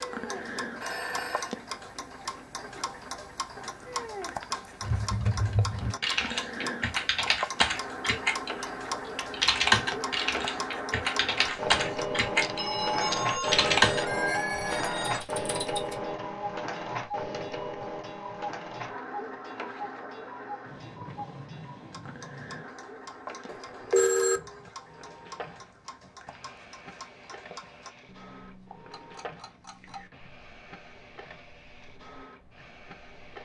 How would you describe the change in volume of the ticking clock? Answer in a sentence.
The volume of the ticking clock goes down.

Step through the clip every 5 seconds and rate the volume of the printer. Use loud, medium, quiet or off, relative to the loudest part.
quiet, medium, loud, loud, quiet, quiet, quiet.